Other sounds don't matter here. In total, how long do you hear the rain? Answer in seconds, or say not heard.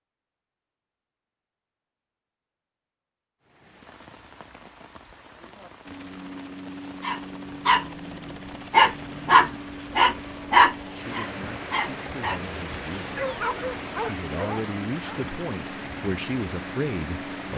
14 s.